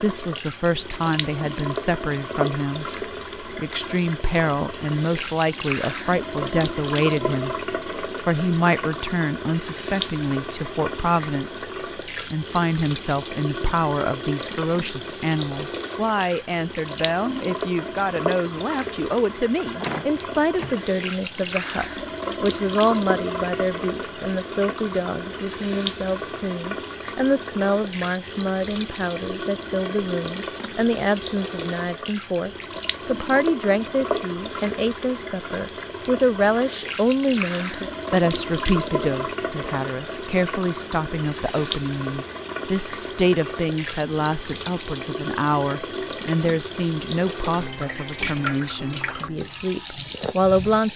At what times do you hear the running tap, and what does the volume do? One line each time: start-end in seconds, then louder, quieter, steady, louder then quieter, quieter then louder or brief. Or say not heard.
0.0-50.9 steady.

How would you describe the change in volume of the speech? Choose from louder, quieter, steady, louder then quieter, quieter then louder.
steady.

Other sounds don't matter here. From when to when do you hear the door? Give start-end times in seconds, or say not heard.
19.8-20.8.